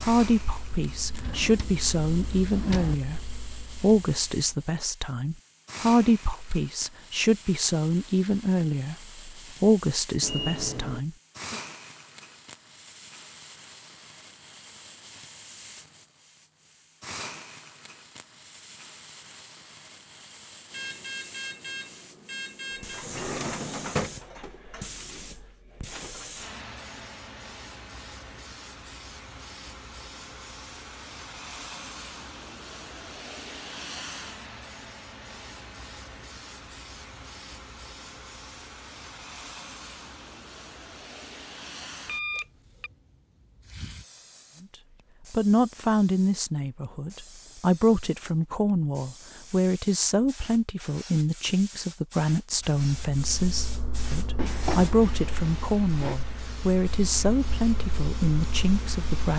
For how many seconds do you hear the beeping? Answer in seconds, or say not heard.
4 s.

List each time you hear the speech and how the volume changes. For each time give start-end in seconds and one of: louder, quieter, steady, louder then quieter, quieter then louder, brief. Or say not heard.
0.0-11.6 steady
45.3-59.3 steady.